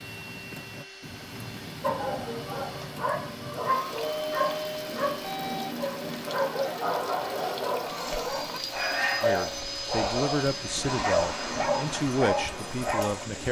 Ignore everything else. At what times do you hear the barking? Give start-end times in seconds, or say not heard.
1.8-13.2.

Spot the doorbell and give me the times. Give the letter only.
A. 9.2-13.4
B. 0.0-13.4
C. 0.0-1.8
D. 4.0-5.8
D.